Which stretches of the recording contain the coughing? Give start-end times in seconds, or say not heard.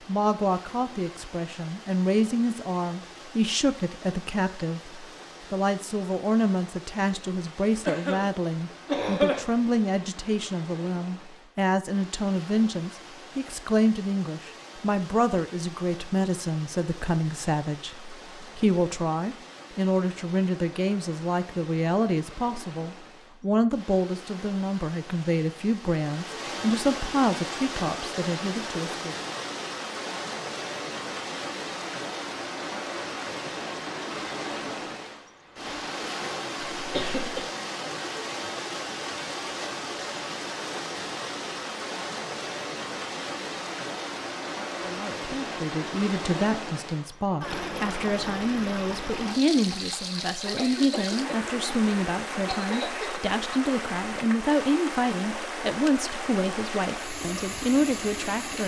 7.8-9.4, 36.8-37.5, 50.4-53.2.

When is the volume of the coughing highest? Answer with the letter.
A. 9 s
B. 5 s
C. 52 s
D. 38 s
A.